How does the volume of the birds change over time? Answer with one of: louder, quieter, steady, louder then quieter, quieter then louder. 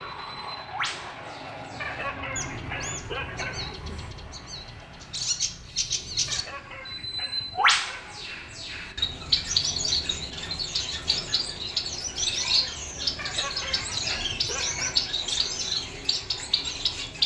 louder.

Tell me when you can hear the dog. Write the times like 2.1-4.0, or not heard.
1.8-3.8, 6.2-8.2, 13.2-15.1.